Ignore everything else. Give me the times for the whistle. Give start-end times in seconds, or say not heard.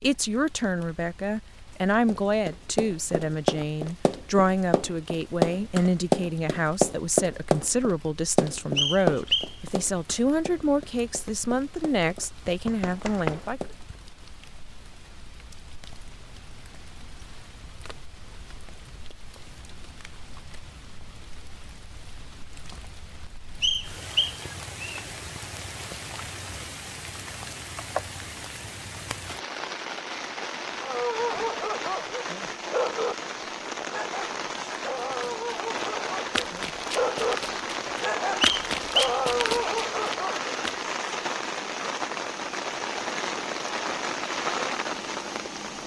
8.8-9.6, 23.6-25.0, 38.4-39.1.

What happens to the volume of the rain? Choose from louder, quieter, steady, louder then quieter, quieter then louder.
louder.